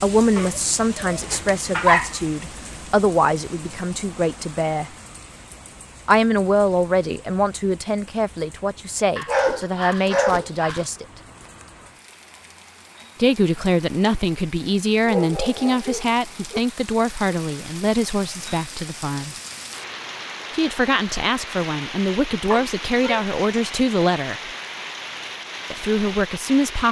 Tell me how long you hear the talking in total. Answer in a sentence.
The talking can be heard for 21 seconds in total.